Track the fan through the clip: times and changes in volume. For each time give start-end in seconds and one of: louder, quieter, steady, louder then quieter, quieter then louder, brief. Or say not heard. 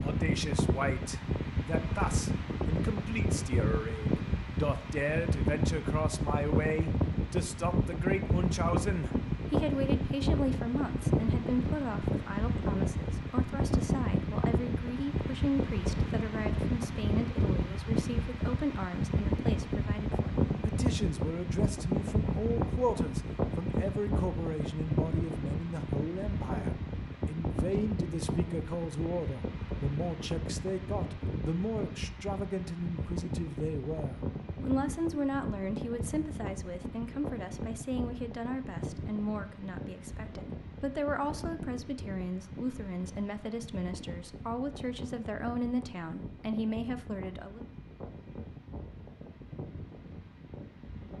0.0-51.1 quieter.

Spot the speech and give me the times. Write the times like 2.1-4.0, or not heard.
0.0-47.6.